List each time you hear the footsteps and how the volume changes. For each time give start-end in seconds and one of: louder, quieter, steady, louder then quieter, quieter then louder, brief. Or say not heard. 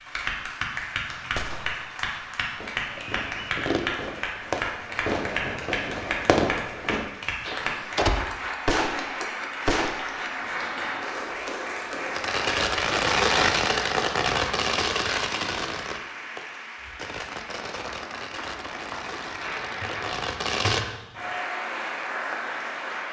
not heard.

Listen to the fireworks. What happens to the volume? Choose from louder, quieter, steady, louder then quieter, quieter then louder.
louder then quieter.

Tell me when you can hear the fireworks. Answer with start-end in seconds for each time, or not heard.
1.4-9.9, 12.1-20.9.